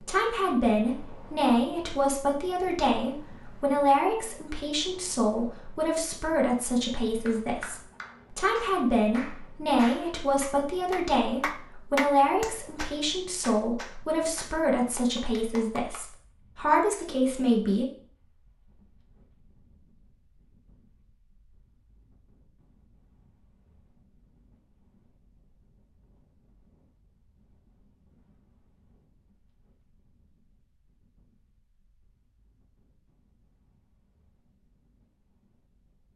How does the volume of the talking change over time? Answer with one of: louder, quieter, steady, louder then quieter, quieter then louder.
steady.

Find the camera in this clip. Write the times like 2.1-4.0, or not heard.
not heard.